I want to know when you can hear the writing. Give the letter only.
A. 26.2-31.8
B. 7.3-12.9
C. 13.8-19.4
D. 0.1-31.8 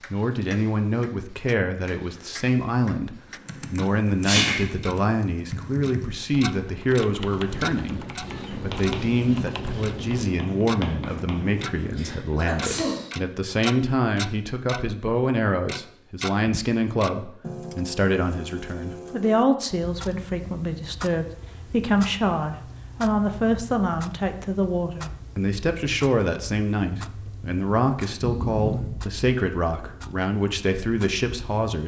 B.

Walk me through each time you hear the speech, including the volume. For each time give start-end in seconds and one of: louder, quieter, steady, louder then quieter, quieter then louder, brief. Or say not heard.
0.1-31.8 steady.